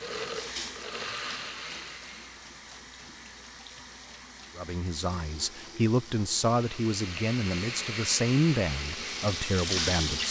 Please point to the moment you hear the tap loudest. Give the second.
10 s.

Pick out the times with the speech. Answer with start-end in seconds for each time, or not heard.
4.5-10.2.